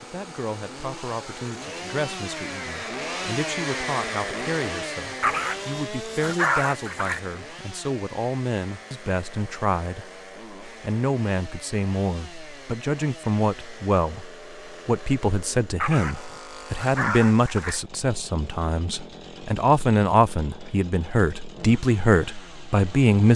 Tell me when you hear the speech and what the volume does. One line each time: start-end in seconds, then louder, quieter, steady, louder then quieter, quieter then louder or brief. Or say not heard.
0.0-23.3 louder.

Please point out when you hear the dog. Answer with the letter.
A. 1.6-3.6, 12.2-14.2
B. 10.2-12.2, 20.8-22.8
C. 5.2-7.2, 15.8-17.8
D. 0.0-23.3
C.